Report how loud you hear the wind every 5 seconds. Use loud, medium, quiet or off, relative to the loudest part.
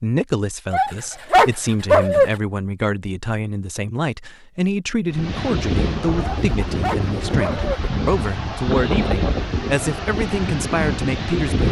off, loud, loud.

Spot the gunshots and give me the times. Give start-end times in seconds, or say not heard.
not heard.